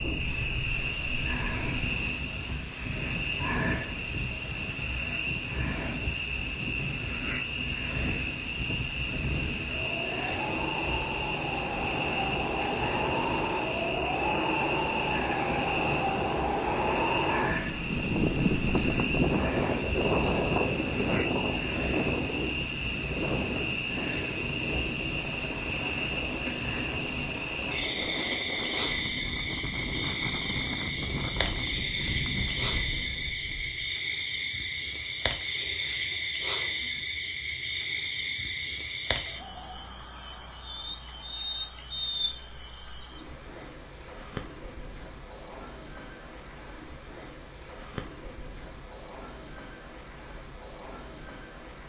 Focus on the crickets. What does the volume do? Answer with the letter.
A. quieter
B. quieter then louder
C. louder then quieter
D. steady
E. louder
D.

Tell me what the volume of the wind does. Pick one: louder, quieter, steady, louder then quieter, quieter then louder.
louder then quieter.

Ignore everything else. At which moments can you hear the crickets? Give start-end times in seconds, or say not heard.
0.0-51.8.